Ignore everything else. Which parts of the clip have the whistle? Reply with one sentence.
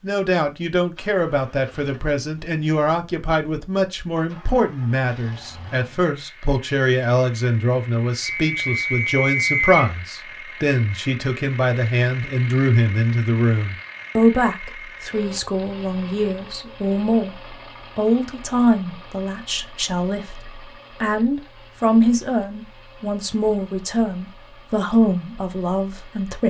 The whistle can be heard from 8.2 to 9.8 s.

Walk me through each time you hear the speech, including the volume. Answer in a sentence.
The speech can be heard from 0.0 to 26.4 s, at a steady volume.